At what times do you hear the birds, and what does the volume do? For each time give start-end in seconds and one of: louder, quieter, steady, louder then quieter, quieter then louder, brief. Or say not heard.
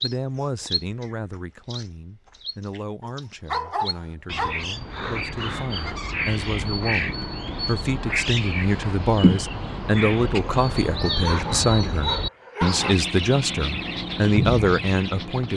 0.0-15.5 louder.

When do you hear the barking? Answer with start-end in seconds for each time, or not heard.
3.0-4.7, 11.2-12.9.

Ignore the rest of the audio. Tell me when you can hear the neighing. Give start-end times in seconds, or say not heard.
not heard.